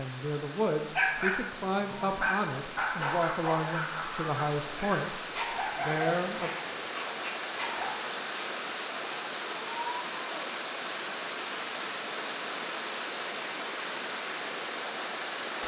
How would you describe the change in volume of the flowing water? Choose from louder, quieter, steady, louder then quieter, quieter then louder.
louder.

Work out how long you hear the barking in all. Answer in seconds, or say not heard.
7 s.